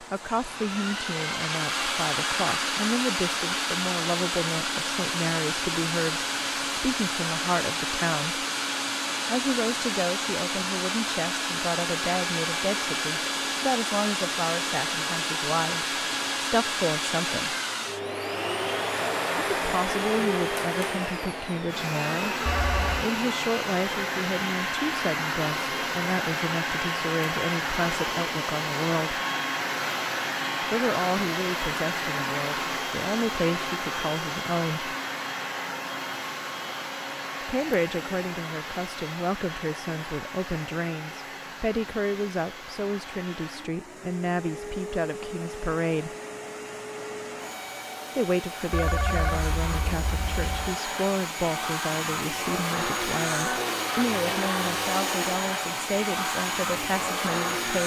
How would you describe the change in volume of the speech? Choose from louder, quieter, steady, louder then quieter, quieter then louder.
steady.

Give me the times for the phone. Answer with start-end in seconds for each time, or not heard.
22.4-23.1, 48.7-50.8.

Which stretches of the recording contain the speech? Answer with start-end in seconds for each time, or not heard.
0.0-8.4, 9.2-17.6, 19.6-29.2, 30.6-35.0, 37.4-46.1, 48.1-57.8.